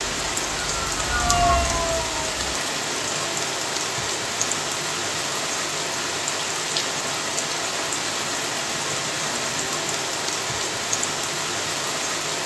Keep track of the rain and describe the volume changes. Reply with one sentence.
The volume of the rain stays about the same.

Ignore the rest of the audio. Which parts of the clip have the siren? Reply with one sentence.
The siren can be heard from 0.0 to 2.5 s.